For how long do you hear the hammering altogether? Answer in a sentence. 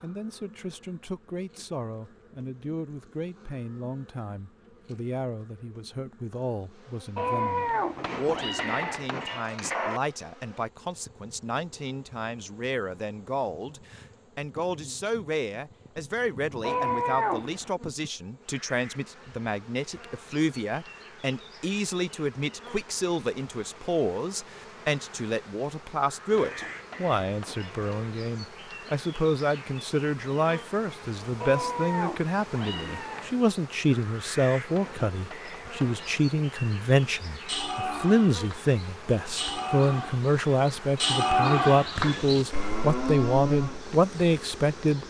You can hear the hammering for 5 seconds altogether.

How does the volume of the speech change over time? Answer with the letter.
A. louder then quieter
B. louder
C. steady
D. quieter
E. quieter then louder
B.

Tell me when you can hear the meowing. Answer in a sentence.
You can hear the meowing from 7.2 to 9.1 s, from 16.6 to 17.7 s and from 31.4 to 33.4 s.